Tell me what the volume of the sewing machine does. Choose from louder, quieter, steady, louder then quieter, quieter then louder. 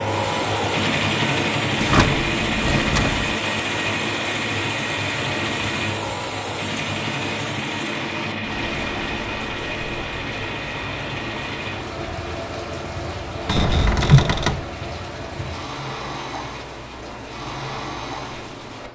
quieter.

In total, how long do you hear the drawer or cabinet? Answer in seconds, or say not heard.
3 s.